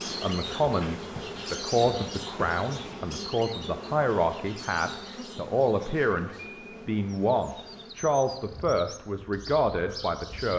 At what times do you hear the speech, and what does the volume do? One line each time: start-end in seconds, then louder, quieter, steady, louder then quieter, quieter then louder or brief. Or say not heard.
0.1-10.5 steady.